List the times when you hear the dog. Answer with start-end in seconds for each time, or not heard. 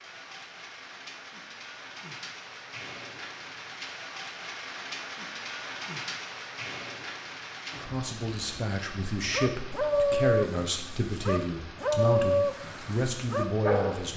9.2-14.1.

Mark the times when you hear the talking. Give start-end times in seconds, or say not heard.
7.7-14.1.